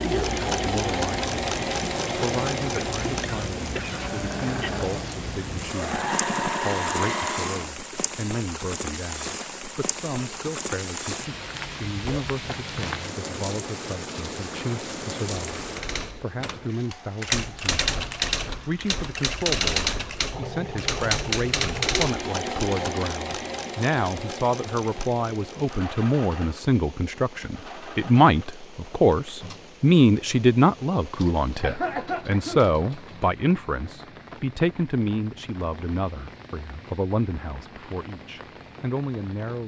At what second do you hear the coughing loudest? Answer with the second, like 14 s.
32 s.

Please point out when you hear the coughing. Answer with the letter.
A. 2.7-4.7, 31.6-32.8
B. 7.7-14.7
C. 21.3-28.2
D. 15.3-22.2
A.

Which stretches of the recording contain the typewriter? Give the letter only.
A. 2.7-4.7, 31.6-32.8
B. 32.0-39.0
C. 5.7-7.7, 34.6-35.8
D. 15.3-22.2
D.